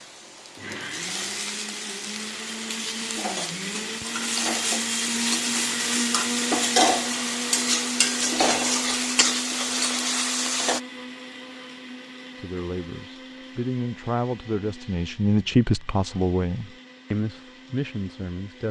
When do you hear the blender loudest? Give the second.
6 s.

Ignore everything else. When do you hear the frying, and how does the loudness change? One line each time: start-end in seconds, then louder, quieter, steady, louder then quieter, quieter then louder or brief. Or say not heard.
0.0-10.8 louder.